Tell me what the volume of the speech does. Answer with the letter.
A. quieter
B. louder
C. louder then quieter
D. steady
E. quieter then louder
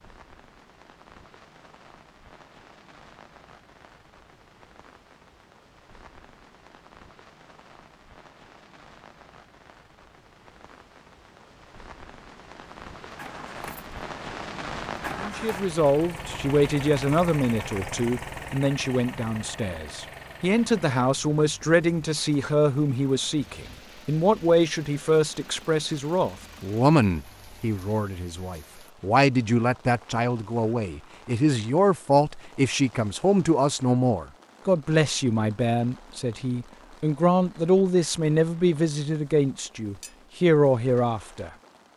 D.